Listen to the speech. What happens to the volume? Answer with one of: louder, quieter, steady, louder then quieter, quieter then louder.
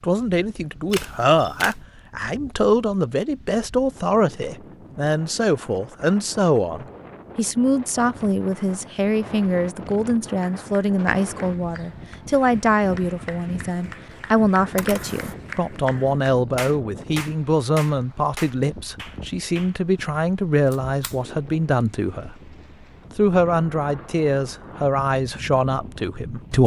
steady.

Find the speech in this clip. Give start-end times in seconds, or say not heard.
0.0-22.4, 23.1-26.6.